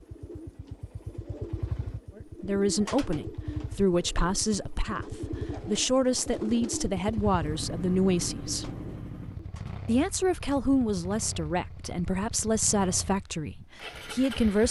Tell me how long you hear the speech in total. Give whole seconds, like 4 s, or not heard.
11 s.